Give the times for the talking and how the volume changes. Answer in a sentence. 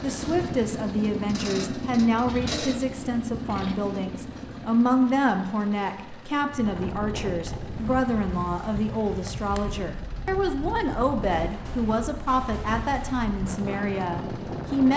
The talking can be heard from 0.0 to 14.9 s, at a steady volume.